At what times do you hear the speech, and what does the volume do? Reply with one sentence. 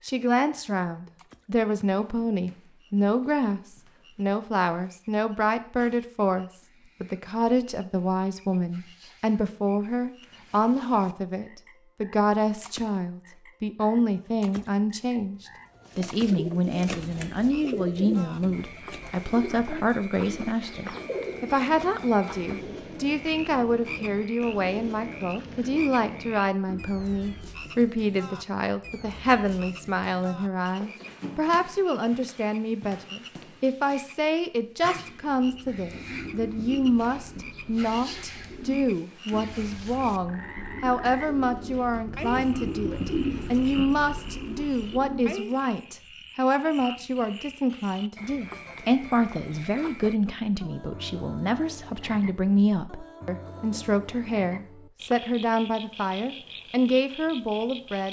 The speech can be heard from 0.0 to 58.0 s, at a steady volume.